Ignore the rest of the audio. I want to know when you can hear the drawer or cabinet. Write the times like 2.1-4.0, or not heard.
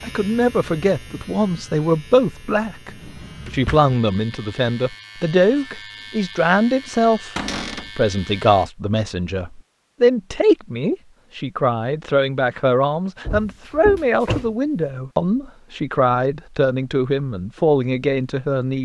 2.9-3.9, 7.3-7.9, 13.2-14.6.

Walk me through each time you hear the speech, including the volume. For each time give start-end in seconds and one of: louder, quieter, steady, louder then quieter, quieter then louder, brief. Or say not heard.
0.0-2.9 brief
3.5-18.8 steady.